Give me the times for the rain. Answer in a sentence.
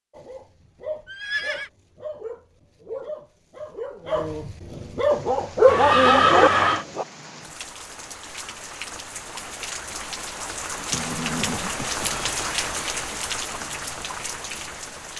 The rain can be heard from 5.0 to 15.1 s.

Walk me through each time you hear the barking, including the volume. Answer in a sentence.
The barking can be heard from 0.1 to 7.0 s, getting louder.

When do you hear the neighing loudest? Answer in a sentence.
The loudest moment of the neighing is at 6 seconds.